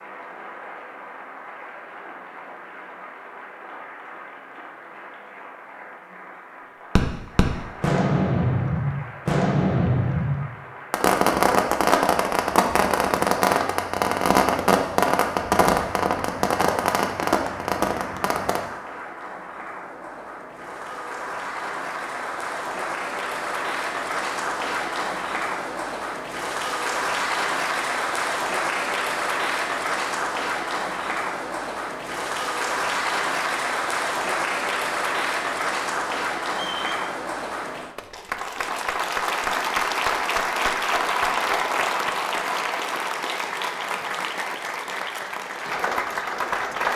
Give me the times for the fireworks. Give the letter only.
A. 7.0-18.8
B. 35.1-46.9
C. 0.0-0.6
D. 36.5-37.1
A.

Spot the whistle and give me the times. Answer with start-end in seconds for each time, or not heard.
36.5-37.1.